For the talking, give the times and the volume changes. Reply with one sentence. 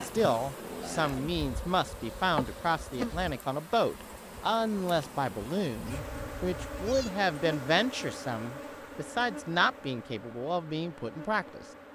The talking can be heard from 0.0 to 11.7 s, at a steady volume.